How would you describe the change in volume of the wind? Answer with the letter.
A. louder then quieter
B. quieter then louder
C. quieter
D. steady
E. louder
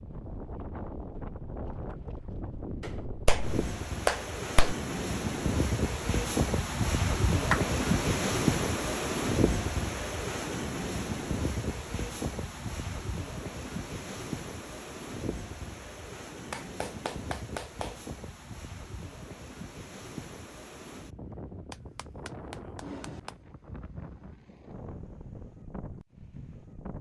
A.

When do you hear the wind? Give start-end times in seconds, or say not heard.
0.0-26.9.